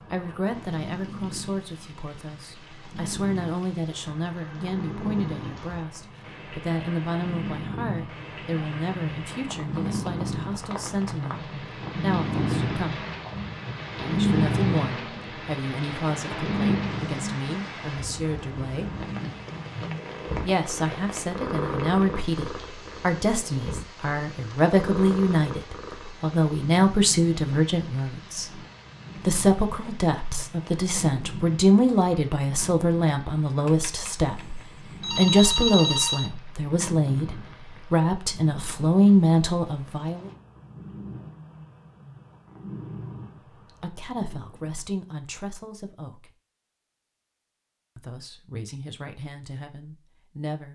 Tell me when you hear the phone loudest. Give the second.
36 s.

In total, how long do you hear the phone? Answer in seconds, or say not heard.
3 s.